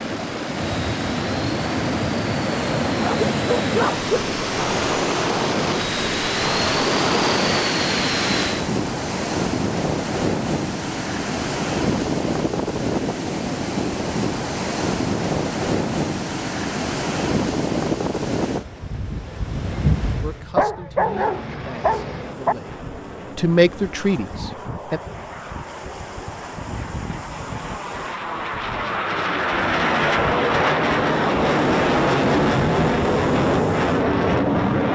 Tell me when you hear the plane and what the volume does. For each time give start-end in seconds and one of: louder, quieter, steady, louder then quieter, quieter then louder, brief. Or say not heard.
0.0-8.7 louder
20.9-34.8 louder.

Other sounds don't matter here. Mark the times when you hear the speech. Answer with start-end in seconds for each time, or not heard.
20.2-22.7, 23.4-25.0.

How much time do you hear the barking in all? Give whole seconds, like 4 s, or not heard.
3 s.